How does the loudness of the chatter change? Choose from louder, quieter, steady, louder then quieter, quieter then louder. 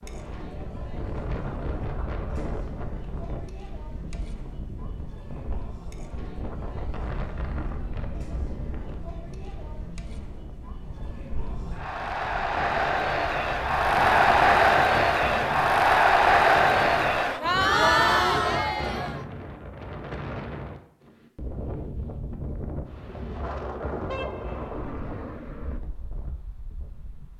louder.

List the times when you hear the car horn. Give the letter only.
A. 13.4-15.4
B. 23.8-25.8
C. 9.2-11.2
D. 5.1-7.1
B.